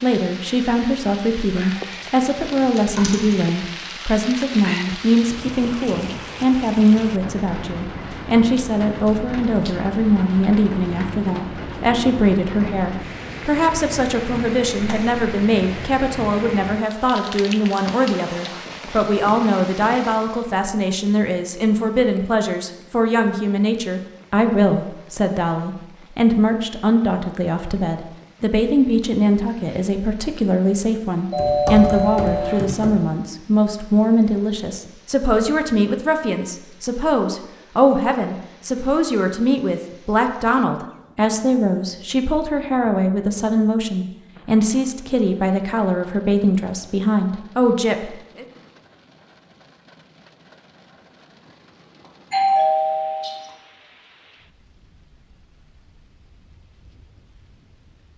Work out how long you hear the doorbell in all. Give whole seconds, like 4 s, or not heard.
3 s.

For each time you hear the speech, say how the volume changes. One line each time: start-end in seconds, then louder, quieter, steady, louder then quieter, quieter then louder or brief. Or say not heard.
0.0-48.5 steady.